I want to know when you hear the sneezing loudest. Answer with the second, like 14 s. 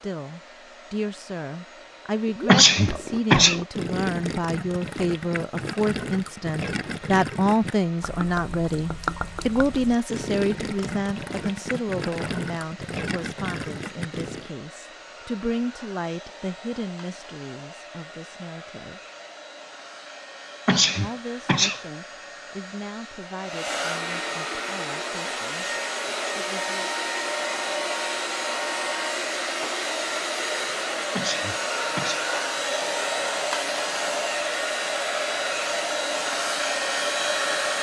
3 s.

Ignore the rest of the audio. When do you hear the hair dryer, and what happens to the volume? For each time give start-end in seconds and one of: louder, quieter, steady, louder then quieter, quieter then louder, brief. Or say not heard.
0.0-37.7 louder.